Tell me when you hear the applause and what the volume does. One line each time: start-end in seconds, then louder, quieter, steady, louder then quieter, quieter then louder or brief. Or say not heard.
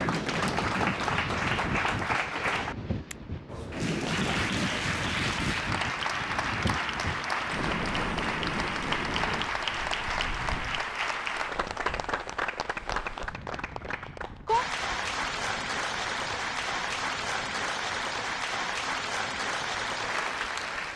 0.0-20.9 steady.